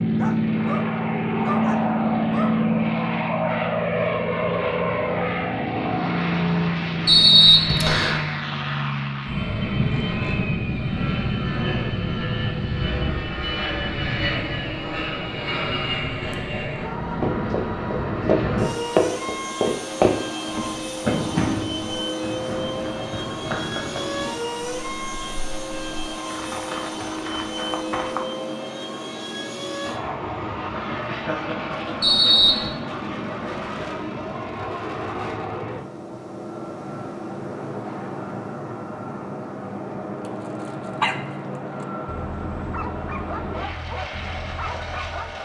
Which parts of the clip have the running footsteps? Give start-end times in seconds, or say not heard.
17.2-28.2.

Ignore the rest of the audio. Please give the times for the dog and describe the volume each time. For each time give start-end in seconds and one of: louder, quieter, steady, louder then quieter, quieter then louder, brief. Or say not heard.
0.0-2.6 brief
40.2-45.4 quieter then louder.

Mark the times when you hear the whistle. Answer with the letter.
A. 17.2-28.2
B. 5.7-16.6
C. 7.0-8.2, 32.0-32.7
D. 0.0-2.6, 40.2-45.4
C.